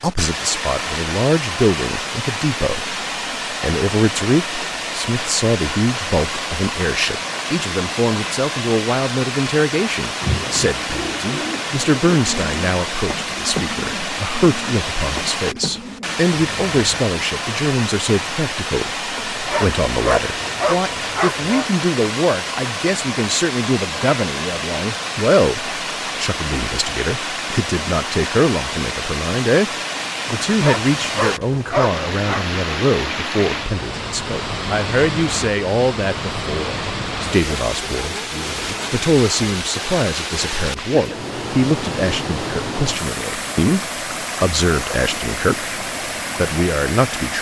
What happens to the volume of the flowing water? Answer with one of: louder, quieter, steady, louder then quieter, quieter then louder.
steady.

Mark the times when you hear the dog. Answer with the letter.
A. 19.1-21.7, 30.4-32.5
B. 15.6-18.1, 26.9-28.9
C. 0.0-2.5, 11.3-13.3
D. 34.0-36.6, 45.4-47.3
A.